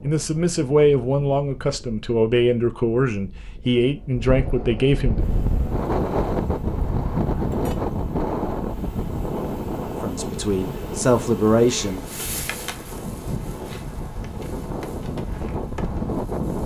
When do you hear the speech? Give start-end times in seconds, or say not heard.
0.0-5.2, 10.0-12.1.